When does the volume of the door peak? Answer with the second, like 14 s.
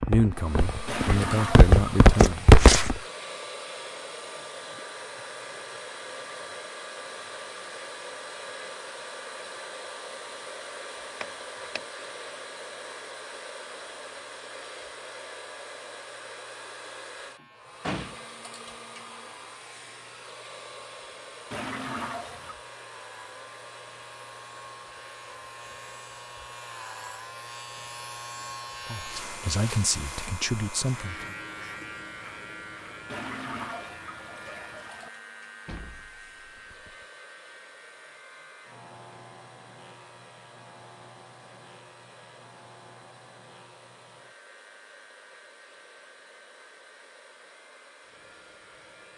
18 s.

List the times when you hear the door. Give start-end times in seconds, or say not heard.
11.2-11.8, 17.4-18.3, 35.6-37.0.